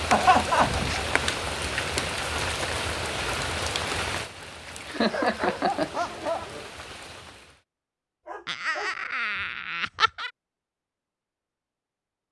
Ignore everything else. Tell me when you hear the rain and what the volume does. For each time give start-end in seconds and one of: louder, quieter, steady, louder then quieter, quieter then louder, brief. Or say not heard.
0.0-7.6 quieter.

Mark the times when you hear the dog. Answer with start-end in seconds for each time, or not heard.
0.1-1.1, 5.1-6.7, 8.2-10.1.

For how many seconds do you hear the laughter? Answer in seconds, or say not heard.
4 s.